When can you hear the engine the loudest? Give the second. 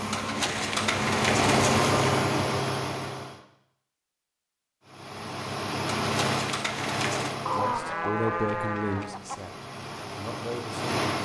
2 s.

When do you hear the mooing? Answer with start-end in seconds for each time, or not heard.
7.5-9.4.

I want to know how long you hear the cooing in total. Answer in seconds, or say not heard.
3 s.